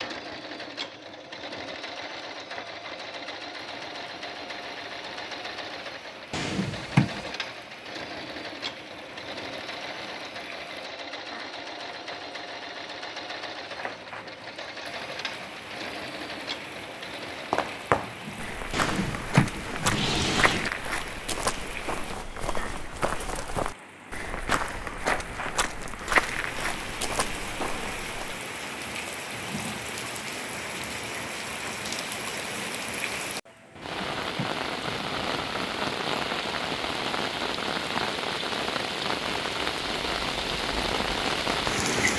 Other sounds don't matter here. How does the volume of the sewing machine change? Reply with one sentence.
The volume of the sewing machine stays about the same.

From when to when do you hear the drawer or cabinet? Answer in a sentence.
You can hear the drawer or cabinet from 6.3 to 7.3 s, from 18.7 to 20.7 s and from 33.8 to 35.7 s.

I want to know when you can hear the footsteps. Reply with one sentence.
You can hear the footsteps from 17.5 to 28.4 s.